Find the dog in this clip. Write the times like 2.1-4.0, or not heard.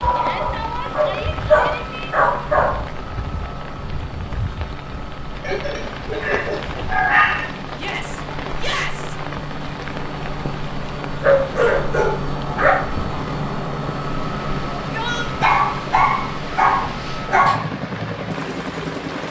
0.0-2.8, 5.4-7.5, 11.2-12.8, 15.4-17.6.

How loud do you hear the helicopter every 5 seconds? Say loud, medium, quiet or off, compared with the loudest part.
medium, medium, loud, loud.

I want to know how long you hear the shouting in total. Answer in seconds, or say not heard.
4 s.